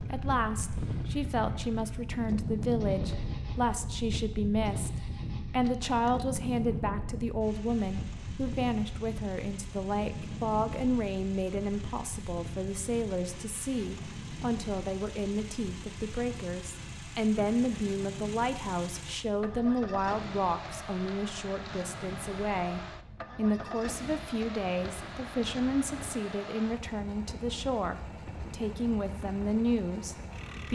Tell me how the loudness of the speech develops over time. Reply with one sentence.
The volume of the speech stays about the same.